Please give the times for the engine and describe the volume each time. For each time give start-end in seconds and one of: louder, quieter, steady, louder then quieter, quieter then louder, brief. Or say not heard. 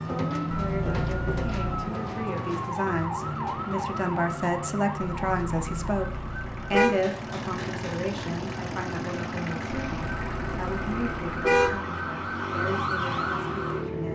3.1-14.1 louder.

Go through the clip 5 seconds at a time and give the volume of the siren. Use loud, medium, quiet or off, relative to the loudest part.
loud, medium, loud.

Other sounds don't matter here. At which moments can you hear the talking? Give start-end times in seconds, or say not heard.
0.0-14.1.